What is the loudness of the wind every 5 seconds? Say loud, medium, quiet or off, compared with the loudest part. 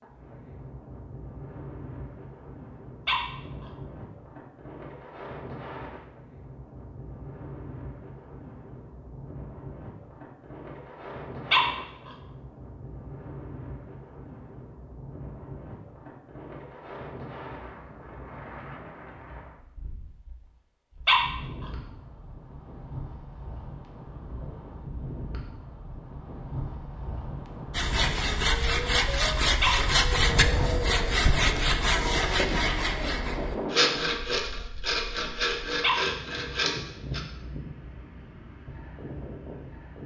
medium, medium, medium, medium, medium, medium, loud, medium.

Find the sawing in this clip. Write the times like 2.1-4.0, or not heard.
27.7-37.2.